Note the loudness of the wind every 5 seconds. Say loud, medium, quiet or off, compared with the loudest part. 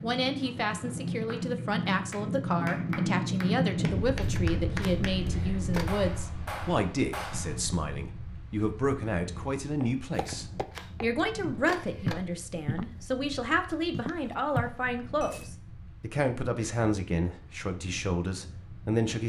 loud, medium, quiet, quiet.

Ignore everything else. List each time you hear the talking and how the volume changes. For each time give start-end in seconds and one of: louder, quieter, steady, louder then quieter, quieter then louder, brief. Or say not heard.
0.0-19.2 steady.